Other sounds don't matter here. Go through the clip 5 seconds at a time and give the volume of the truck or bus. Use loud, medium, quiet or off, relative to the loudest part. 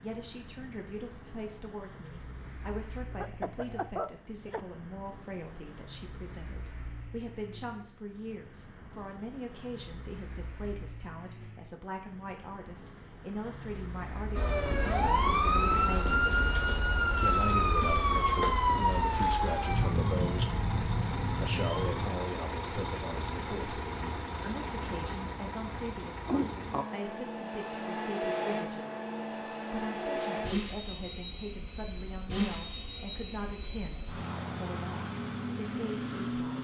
quiet, quiet, quiet, medium, loud, loud, loud, loud.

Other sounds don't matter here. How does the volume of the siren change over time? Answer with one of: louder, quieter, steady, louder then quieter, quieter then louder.
quieter.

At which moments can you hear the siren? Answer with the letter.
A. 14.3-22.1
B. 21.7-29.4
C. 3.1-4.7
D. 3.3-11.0
A.